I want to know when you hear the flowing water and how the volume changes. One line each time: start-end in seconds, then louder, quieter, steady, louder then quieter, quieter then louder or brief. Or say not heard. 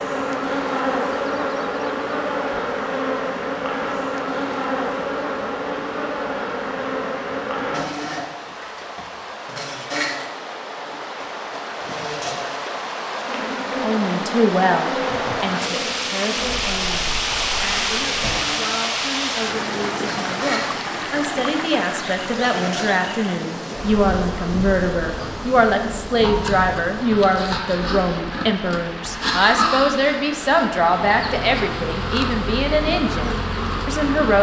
0.0-34.0 louder then quieter.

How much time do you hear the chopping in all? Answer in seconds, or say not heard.
not heard.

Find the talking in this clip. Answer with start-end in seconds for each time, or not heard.
13.8-34.3.